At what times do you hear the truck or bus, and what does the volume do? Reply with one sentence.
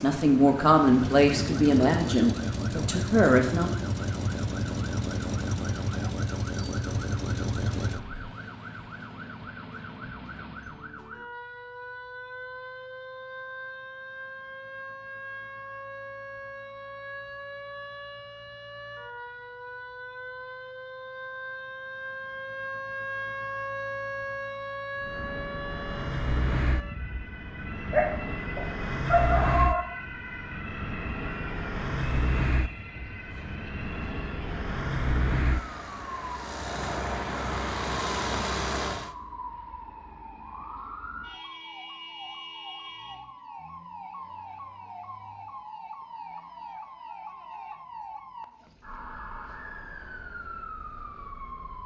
The truck or bus can be heard from 0.0 to 8.2 s, at a steady volume; and from 24.9 to 39.1 s, at a steady volume.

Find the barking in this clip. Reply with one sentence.
The barking can be heard from 27.9 to 29.9 s.